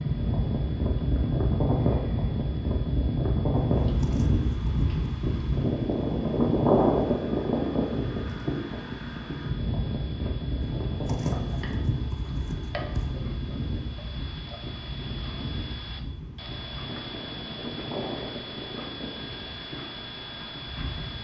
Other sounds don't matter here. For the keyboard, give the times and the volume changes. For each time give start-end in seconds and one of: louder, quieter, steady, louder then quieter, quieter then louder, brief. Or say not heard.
not heard.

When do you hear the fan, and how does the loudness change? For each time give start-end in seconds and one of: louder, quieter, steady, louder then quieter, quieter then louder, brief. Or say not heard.
0.0-21.1 quieter.